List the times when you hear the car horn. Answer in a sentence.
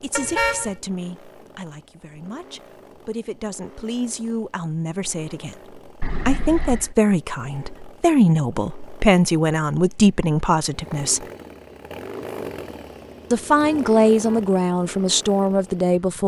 You can hear the car horn from 0.1 to 0.8 s, from 6.0 to 7.0 s and from 13.6 to 14.5 s.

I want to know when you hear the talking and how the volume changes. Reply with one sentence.
You can hear the talking from 0.0 to 11.2 s, getting louder; and briefly from 13.3 to 16.2 s.